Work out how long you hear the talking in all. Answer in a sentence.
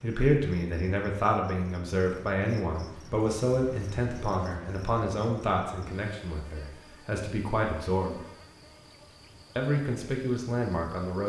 You can hear the talking for 10 seconds altogether.